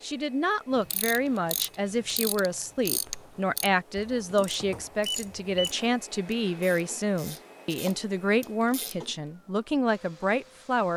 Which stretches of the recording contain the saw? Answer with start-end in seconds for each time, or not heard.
not heard.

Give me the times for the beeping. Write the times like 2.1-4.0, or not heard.
5.0-5.7.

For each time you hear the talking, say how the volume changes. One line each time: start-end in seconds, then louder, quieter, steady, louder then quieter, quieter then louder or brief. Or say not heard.
0.0-10.9 steady.